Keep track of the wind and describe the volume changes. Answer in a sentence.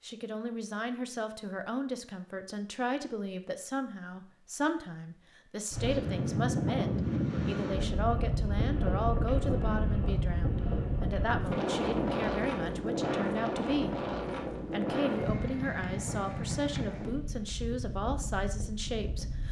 The volume of the wind goes down.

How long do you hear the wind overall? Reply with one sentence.
The wind can be heard for 14 seconds in total.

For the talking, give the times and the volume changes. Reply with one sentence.
The talking can be heard from 0.0 to 13.9 s, at a steady volume; and from 14.7 to 19.4 s, at a steady volume.